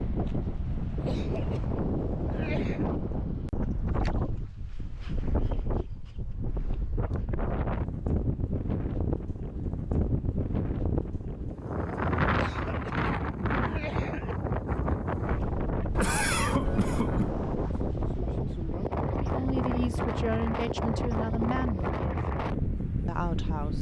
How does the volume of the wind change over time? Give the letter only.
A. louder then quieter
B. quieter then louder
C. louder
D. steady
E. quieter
D.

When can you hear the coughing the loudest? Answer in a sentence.
The volume of the coughing peaks at 16 seconds.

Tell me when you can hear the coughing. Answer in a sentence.
You can hear the coughing from 1.0 to 2.9 s, from 12.3 to 14.3 s and from 15.9 to 17.3 s.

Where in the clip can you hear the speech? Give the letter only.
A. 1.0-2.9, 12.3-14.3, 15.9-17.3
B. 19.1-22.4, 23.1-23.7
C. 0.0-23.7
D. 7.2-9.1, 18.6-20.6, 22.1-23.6
B.